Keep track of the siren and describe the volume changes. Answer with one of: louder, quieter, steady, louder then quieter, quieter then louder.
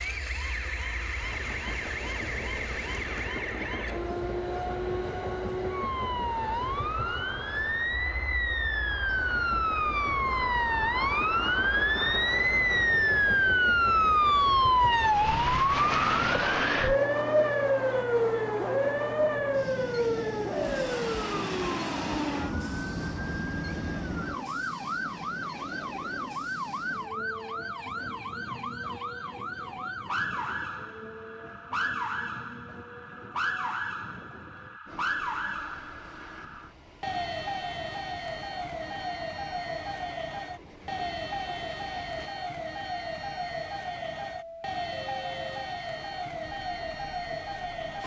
louder then quieter.